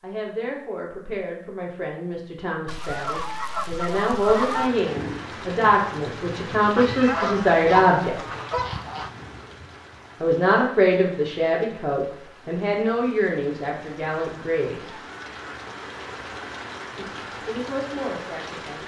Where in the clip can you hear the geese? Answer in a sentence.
You can hear the geese from 2.6 to 4.7 s, from 6.8 to 9.1 s and from 14.9 to 15.4 s.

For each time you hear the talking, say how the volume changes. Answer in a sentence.
You can hear the talking from 0.0 to 8.2 s, getting louder; from 10.2 to 14.9 s, getting quieter; and briefly from 16.9 to 18.8 s.